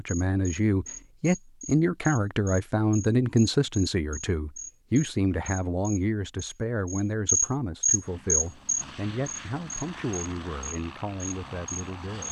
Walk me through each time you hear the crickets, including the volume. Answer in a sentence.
You can hear the crickets from 0.1 to 12.2 s, getting louder then quieter.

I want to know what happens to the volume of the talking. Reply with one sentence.
The volume of the talking goes down.